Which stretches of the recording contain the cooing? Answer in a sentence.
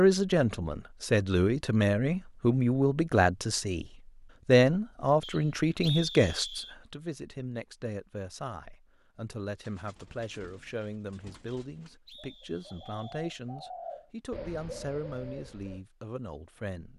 The cooing can be heard from 9.6 to 15.8 s.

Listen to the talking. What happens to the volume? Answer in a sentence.
The volume of the talking goes down.